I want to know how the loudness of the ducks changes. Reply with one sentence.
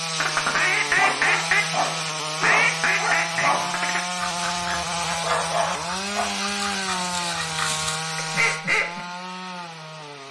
The loudness of the ducks goes down, then up.